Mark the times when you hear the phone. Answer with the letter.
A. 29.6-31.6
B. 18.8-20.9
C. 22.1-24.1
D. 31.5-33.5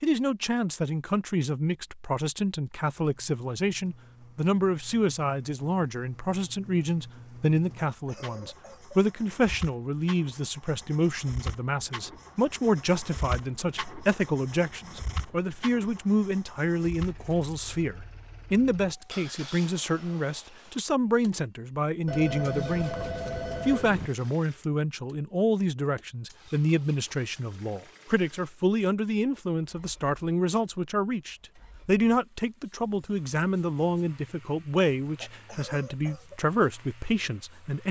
C.